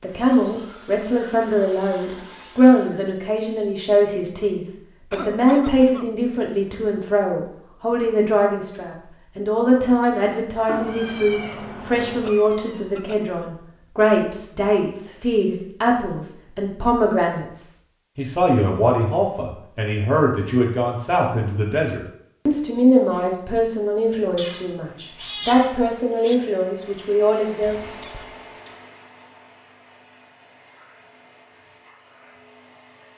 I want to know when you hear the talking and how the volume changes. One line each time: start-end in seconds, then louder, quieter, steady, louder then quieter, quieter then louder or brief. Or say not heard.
0.0-27.8 steady.